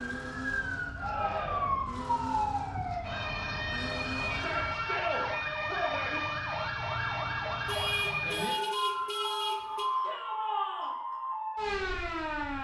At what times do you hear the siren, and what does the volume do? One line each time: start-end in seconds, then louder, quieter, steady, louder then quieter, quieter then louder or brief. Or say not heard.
0.0-12.5 steady.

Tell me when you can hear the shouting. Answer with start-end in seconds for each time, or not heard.
0.9-1.9, 4.3-6.2, 10.0-10.9.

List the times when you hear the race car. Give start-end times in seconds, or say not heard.
0.0-4.8.